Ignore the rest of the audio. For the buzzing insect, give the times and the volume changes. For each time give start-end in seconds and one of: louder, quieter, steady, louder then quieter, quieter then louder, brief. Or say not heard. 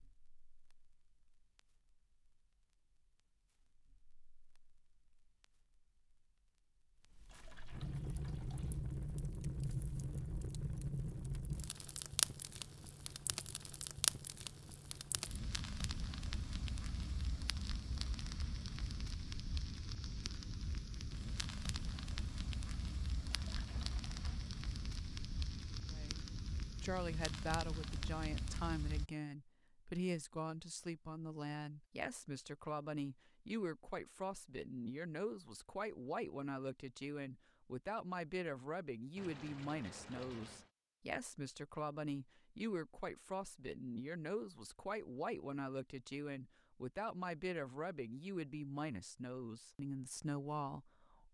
not heard.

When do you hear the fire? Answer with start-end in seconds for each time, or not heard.
0.0-29.1.